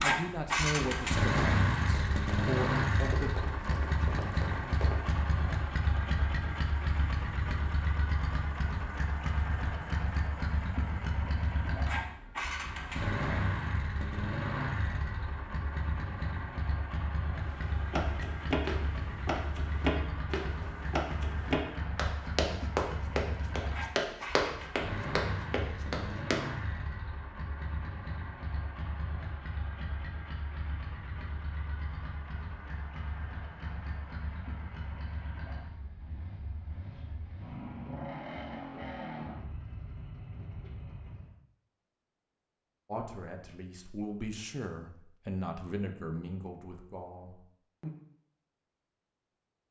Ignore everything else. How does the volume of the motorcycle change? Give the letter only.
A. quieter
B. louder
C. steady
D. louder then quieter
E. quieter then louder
A.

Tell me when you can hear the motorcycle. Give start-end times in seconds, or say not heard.
0.0-41.3.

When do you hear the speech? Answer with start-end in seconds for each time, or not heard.
0.0-3.3, 42.9-47.9.